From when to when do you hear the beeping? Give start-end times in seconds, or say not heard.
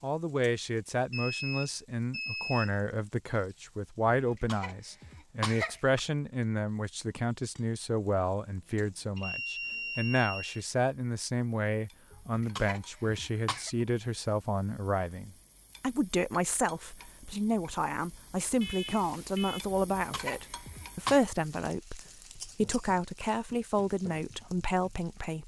1.1-2.8, 9.2-10.7, 18.6-19.6.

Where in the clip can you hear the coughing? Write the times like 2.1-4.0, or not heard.
4.2-6.0, 12.1-13.7, 19.7-21.2.